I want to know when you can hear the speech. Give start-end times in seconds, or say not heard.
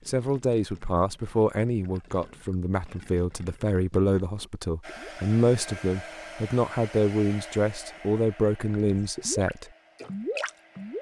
0.1-9.7.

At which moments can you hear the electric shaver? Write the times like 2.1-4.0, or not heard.
not heard.